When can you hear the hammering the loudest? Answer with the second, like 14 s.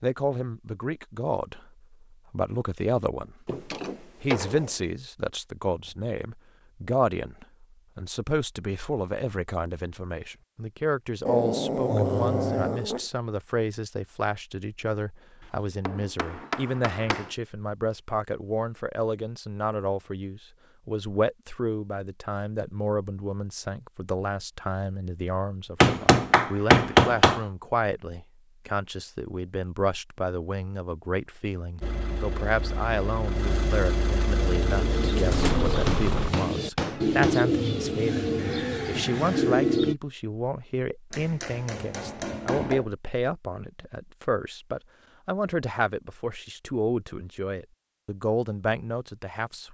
27 s.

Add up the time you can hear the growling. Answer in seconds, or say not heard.
2 s.